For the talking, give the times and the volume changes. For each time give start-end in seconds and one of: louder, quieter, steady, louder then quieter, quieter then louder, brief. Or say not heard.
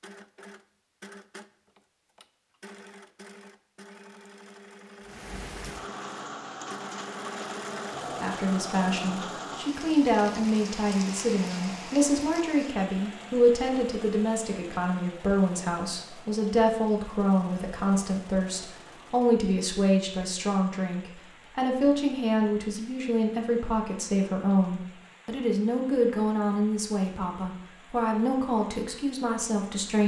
8.2-30.0 steady.